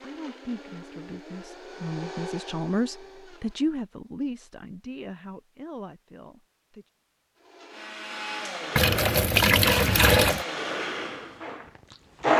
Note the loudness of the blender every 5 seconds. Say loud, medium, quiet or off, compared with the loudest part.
quiet, medium, loud.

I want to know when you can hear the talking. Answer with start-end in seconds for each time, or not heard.
0.0-6.8.